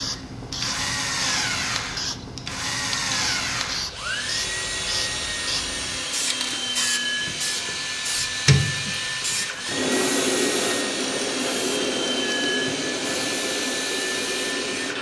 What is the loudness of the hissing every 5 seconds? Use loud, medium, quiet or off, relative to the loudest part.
medium, loud, loud.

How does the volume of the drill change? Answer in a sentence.
The loudness of the drill stays about the same.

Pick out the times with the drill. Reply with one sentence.
The drill can be heard from 0.0 to 14.9 s.